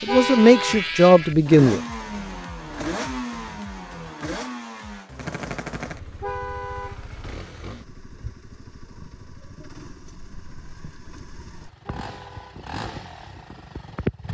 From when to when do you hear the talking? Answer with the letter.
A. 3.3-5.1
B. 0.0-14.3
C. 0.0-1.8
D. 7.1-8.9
C.